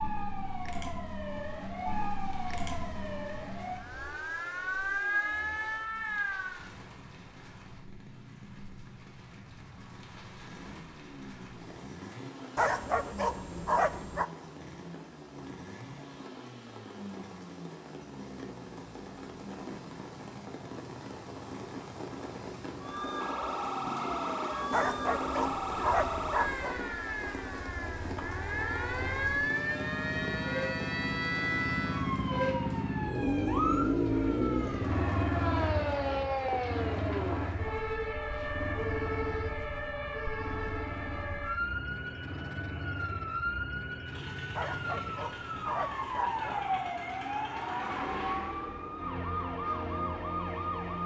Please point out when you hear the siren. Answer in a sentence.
You can hear the siren from 0.0 to 6.7 s and from 22.8 to 51.0 s.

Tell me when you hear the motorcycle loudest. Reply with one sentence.
The loudest moment of the motorcycle is at 34 seconds.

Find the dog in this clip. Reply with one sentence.
The dog can be heard from 12.6 to 14.2 s, from 24.7 to 26.8 s and from 44.5 to 46.8 s.